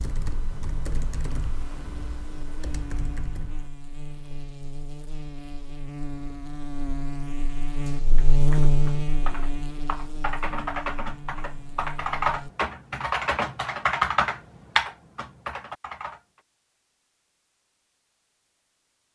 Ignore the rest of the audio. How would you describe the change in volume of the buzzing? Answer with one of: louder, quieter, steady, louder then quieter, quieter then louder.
louder then quieter.